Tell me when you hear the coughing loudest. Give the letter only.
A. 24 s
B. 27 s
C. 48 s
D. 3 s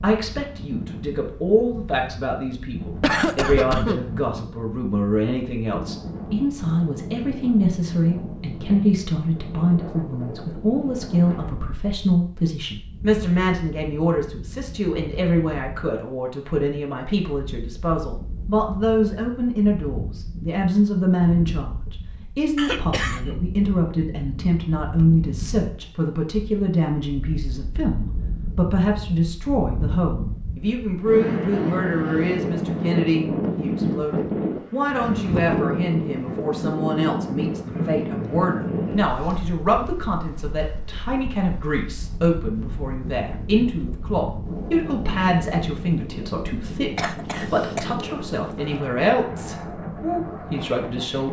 D.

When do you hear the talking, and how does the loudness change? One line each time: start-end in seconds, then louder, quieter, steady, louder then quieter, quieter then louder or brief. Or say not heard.
0.0-51.2 steady.